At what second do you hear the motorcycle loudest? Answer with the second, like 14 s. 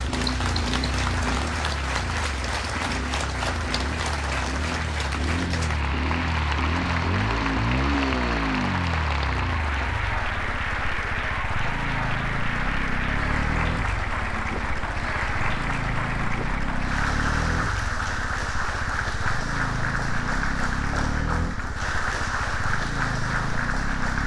8 s.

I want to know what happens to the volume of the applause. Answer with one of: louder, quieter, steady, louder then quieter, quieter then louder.
steady.